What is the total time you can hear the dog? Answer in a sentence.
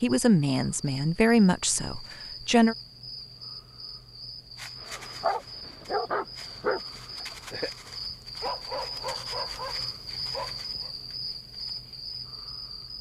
The dog can be heard for 6 seconds in total.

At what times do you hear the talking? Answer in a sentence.
The talking can be heard from 0.0 to 2.8 s.